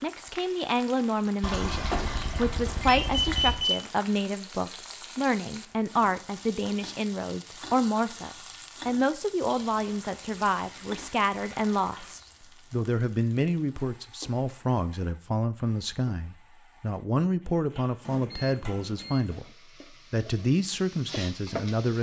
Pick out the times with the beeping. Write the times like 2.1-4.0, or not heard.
2.8-3.9, 18.3-19.2.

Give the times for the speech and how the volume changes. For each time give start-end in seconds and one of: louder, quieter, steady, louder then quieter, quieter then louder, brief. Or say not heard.
0.0-21.9 steady.